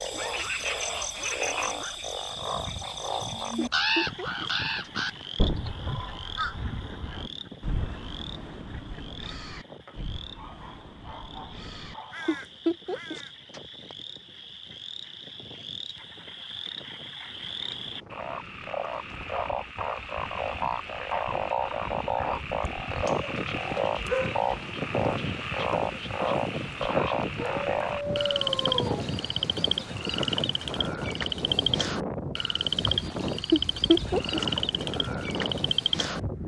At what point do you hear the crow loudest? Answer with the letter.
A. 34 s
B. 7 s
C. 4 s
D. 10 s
C.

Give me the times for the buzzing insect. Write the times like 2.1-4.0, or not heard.
not heard.